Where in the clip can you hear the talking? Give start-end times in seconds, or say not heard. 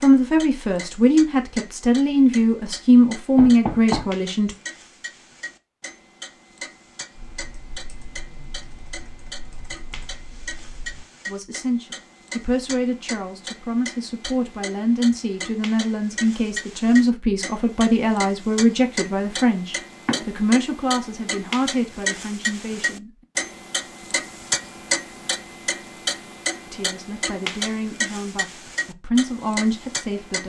0.0-4.5, 11.2-23.1, 26.7-30.4.